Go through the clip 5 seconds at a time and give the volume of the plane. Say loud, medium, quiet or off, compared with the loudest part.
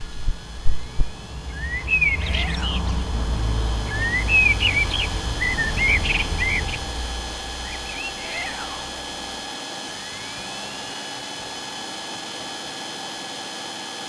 medium, loud, loud.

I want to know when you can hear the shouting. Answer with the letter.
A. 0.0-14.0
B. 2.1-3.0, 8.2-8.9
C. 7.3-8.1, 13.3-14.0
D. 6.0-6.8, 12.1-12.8
B.